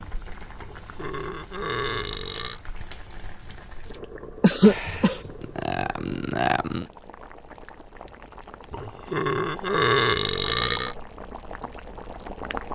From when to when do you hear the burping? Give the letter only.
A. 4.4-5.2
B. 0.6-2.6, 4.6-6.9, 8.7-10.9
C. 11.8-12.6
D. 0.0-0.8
B.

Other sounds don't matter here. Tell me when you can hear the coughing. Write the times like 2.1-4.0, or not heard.
4.4-5.2.